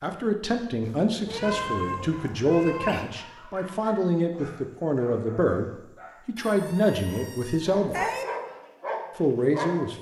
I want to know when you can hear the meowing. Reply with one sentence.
You can hear the meowing from 0.8 to 3.0 s and from 6.3 to 8.2 s.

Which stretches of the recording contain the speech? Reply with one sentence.
The speech can be heard from 0.0 to 8.1 s and from 9.2 to 9.9 s.